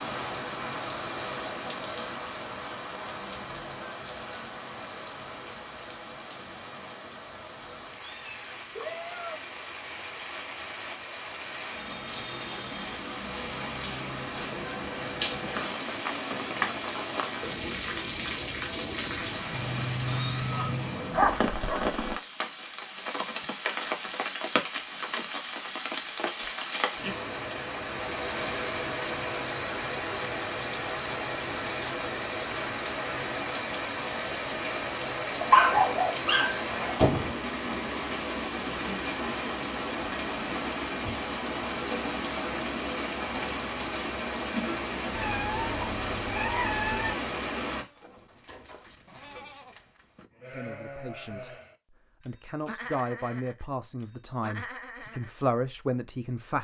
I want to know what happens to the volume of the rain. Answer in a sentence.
The loudness of the rain goes up.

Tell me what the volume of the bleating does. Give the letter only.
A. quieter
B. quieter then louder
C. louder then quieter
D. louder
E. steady
D.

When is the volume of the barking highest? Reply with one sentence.
The volume of the barking peaks at 36 seconds.